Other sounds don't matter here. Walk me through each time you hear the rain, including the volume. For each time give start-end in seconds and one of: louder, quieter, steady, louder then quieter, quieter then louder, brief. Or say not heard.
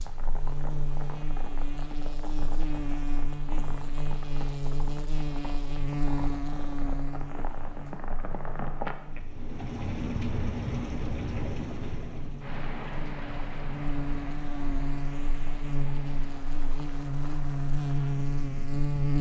0.0-18.9 louder then quieter.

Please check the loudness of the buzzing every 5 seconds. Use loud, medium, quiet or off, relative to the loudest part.
medium, medium, medium, loud.